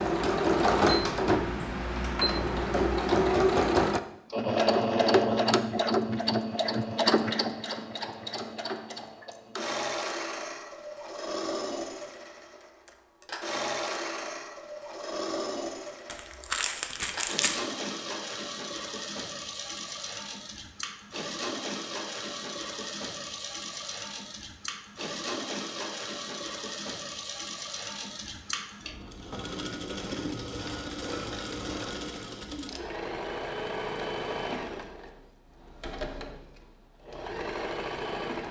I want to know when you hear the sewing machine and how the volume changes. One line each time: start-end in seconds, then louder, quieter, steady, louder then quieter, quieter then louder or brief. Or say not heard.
0.0-38.4 quieter.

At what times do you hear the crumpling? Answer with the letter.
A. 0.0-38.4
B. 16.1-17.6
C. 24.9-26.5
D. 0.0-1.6
B.